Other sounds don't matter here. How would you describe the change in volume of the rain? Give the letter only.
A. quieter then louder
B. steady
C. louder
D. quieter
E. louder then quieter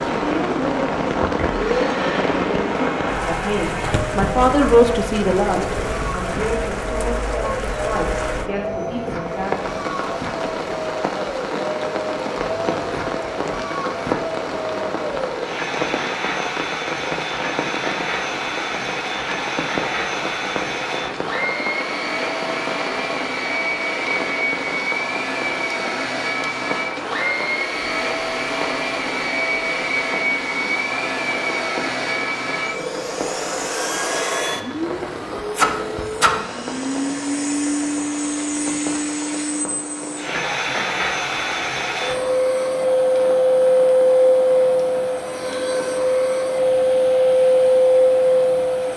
D.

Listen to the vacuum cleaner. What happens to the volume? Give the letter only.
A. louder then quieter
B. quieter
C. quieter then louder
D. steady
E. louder
E.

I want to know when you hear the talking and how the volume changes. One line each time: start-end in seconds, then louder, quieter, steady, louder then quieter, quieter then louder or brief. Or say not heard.
0.2-9.7 louder then quieter.